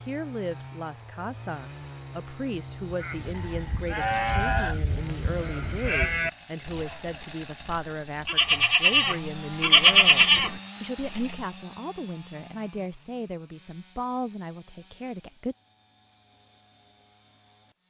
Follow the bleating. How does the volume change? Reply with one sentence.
The loudness of the bleating goes up.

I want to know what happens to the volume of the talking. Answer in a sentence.
The volume of the talking stays about the same.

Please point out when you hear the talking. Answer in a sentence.
You can hear the talking from 0.1 to 15.6 s.